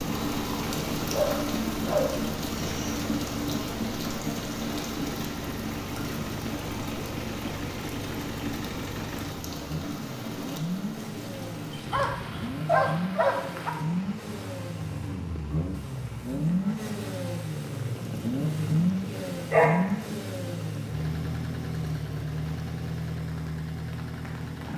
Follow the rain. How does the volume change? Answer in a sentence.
The volume of the rain goes down.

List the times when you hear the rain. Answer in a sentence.
You can hear the rain from 0.0 to 24.7 s.